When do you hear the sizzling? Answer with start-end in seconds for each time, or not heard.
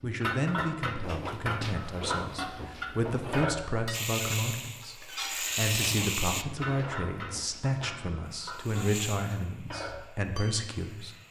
3.9-6.5, 8.2-11.2.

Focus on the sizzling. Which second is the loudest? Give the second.
6 s.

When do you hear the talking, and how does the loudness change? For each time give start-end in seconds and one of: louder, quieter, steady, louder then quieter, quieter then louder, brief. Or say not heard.
0.0-11.1 steady.